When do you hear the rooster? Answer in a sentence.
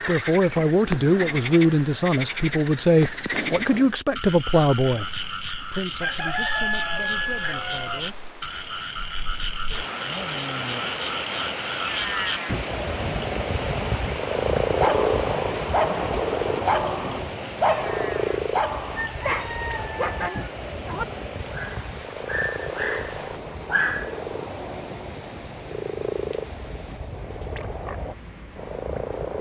You can hear the rooster from 6.0 to 8.0 s and from 18.9 to 20.5 s.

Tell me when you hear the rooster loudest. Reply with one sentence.
The loudest moment of the rooster is at 7 seconds.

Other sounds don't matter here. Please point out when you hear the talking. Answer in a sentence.
The talking can be heard from 0.1 to 8.2 s and from 10.1 to 10.8 s.